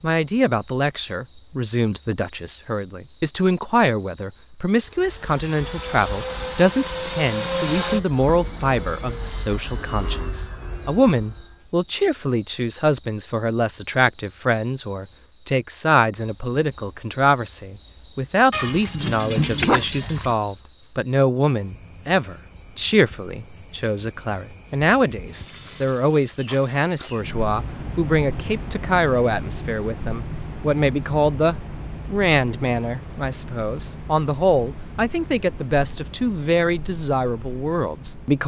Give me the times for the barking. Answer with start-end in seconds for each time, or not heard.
18.5-20.4.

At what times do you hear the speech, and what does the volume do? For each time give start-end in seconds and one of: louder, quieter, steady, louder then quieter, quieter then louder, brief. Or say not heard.
0.0-38.4 steady.